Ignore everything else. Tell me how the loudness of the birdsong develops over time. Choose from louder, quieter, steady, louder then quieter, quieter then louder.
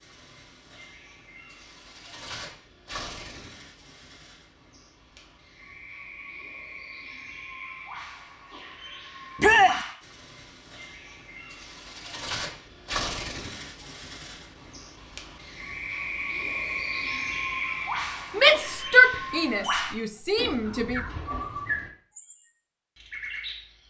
louder.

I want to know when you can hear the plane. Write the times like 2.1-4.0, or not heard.
not heard.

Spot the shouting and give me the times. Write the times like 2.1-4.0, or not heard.
9.4-9.8, 18.4-21.0.